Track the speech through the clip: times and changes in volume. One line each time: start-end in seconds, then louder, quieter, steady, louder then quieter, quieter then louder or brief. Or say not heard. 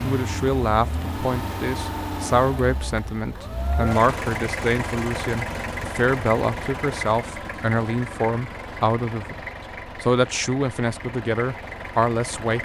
0.0-9.4 steady
10.0-12.5 brief.